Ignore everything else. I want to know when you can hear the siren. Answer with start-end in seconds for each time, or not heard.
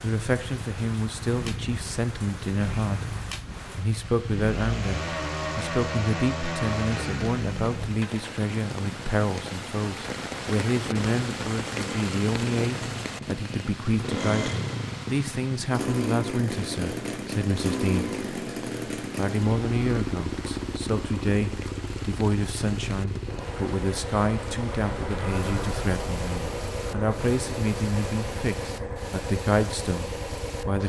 not heard.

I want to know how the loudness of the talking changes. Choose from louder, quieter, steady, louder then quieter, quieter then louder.
steady.